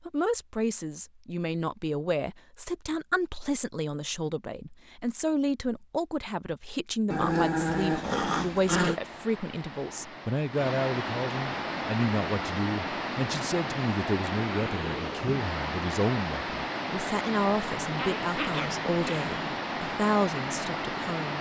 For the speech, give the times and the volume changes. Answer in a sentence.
The speech can be heard from 0.1 to 21.3 s, at a steady volume.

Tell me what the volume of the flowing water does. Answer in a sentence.
The volume of the flowing water goes up.